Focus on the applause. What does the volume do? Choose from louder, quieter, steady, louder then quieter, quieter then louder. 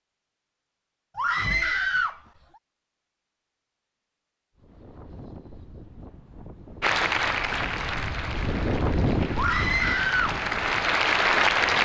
quieter then louder.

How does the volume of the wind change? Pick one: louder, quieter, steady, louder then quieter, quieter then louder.
louder then quieter.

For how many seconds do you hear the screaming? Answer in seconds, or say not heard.
2 s.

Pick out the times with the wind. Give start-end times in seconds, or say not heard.
4.5-11.8.